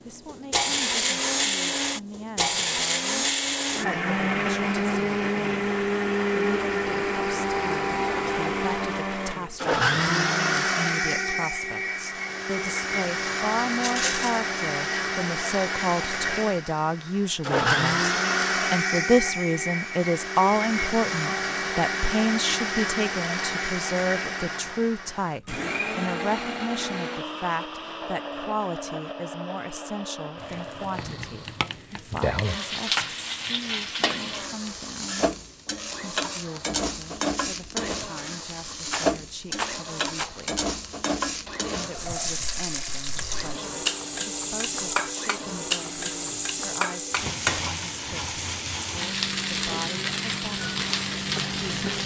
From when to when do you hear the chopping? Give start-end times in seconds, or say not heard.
not heard.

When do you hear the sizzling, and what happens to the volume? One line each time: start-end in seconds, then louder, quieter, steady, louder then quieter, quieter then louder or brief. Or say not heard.
30.4-52.0 steady.